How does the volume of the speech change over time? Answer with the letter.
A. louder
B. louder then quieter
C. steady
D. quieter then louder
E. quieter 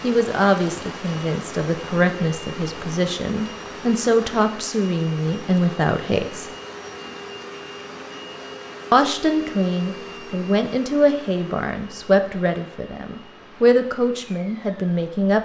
C.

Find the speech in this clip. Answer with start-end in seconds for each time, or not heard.
0.0-6.5, 8.9-15.3.